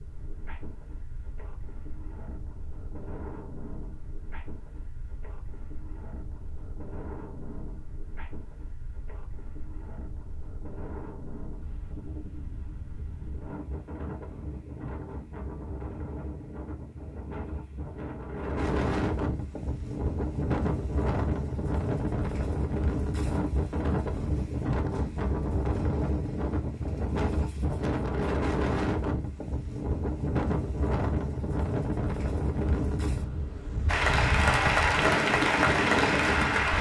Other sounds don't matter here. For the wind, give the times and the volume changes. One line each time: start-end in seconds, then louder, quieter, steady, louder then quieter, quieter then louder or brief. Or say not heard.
0.0-36.7 louder.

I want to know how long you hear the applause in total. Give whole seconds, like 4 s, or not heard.
3 s.